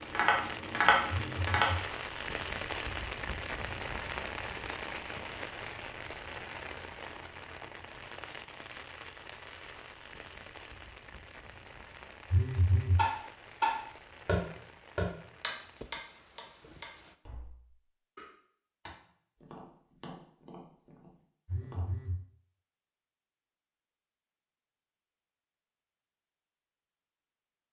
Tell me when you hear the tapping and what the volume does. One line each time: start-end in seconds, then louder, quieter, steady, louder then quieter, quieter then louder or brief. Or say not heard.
0.0-1.7 brief
12.9-21.9 quieter.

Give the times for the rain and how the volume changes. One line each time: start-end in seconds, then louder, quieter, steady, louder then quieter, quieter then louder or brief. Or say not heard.
0.0-17.1 quieter.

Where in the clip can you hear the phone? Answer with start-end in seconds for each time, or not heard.
1.1-1.9, 12.3-13.1, 21.4-22.2.